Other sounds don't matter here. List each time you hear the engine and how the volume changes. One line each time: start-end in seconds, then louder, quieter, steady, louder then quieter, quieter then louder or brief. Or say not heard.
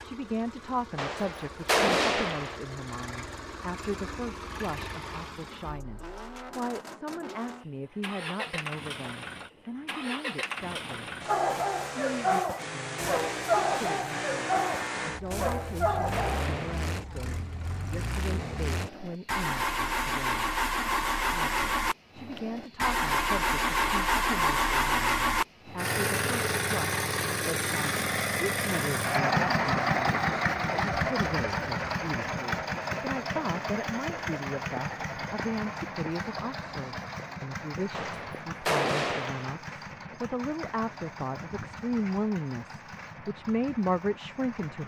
0.0-44.8 louder then quieter.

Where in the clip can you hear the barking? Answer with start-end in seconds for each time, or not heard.
11.2-16.4.